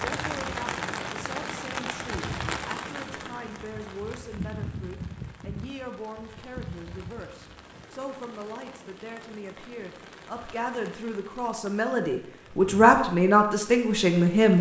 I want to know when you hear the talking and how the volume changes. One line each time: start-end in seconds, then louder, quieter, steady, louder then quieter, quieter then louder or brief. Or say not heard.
0.0-14.5 louder.